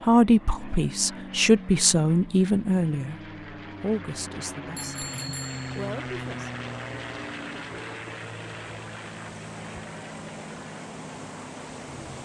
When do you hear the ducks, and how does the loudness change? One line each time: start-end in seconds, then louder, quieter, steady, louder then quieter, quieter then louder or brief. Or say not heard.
not heard.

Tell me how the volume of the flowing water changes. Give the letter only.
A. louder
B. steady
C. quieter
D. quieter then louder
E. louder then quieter
A.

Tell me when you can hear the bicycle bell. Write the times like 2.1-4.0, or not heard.
4.8-5.9.